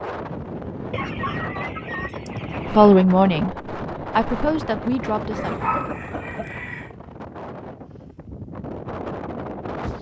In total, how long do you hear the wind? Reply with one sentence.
You can hear the wind for 10 seconds altogether.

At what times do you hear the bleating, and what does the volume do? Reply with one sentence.
You can't hear the bleating here.